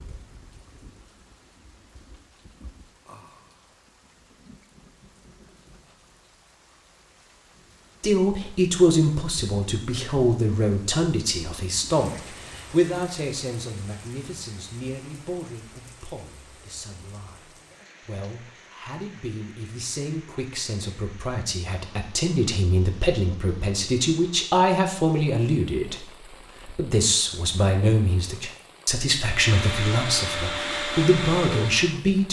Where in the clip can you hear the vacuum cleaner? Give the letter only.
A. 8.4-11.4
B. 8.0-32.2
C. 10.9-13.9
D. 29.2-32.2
D.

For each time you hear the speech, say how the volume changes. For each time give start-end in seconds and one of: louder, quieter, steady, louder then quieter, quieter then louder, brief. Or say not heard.
8.0-32.2 quieter then louder.